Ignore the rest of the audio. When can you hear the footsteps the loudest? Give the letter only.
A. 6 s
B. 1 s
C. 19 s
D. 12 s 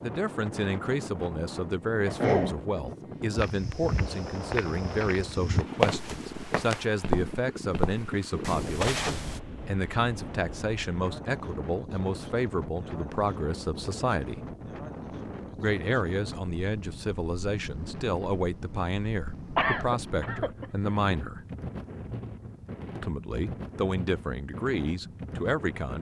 A.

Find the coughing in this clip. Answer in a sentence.
The coughing can be heard from 2.0 to 2.5 s and from 19.6 to 20.6 s.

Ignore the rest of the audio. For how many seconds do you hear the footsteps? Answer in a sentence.
You can hear the footsteps for 6 seconds altogether.